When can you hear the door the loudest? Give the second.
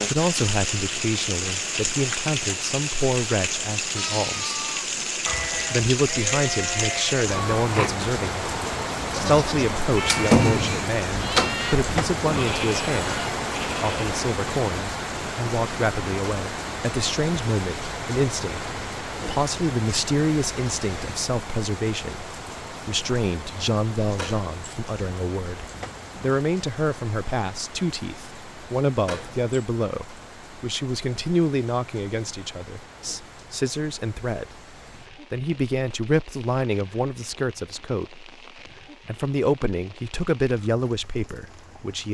10 s.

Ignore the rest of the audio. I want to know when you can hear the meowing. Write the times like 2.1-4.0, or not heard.
not heard.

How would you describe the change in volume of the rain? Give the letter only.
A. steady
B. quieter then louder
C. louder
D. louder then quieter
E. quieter
E.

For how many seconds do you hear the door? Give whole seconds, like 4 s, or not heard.
3 s.